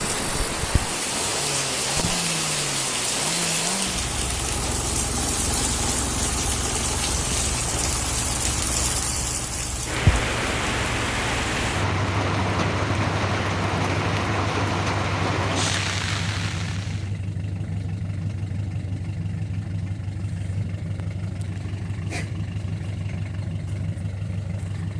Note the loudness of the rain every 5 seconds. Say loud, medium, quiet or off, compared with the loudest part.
loud, loud, loud, loud, off.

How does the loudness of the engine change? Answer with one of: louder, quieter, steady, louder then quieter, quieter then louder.
steady.